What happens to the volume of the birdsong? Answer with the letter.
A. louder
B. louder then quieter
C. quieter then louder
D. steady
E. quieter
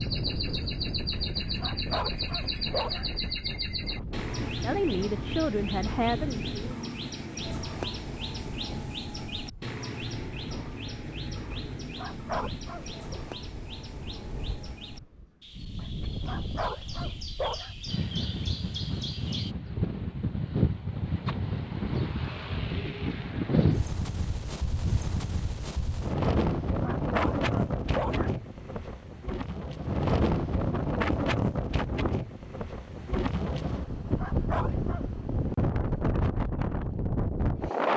E.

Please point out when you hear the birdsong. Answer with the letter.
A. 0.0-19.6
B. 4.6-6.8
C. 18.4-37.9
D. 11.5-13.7
A.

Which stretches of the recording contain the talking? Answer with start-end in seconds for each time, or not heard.
4.6-6.8.